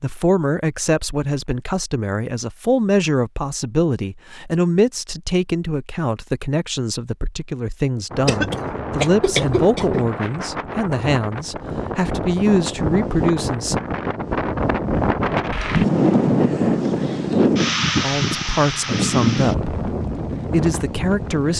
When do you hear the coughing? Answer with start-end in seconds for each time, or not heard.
8.2-10.1.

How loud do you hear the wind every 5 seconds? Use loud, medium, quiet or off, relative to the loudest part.
off, medium, medium, loud, medium.